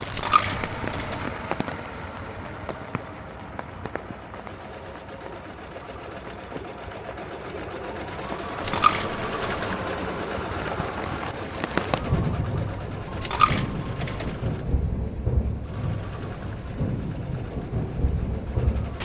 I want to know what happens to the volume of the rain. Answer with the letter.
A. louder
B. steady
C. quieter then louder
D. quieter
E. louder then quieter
C.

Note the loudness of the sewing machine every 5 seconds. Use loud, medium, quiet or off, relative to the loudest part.
medium, loud, loud, medium.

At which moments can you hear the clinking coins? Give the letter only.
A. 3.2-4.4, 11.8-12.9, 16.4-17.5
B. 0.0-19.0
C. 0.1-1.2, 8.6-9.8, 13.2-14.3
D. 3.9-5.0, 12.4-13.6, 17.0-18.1
C.